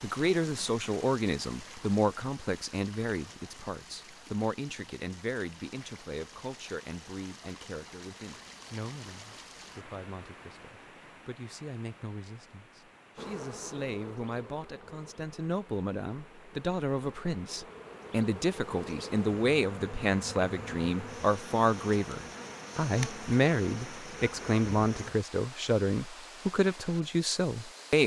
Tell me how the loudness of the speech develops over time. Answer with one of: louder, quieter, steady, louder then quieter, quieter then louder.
quieter then louder.